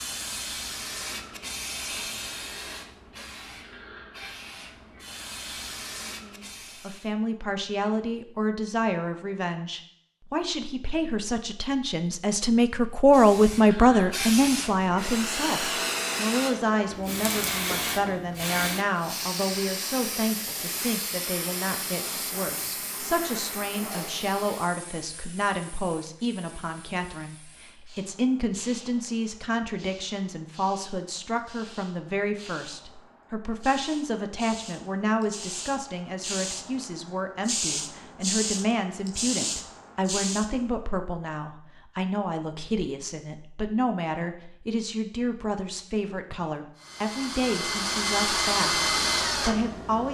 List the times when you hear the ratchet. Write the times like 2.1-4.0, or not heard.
not heard.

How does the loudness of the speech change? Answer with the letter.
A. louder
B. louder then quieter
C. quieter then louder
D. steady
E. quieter
E.